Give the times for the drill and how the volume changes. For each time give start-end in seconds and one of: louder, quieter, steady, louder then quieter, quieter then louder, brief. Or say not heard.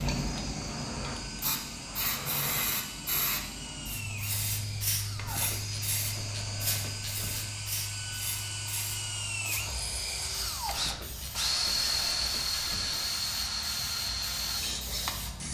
0.0-15.4 louder.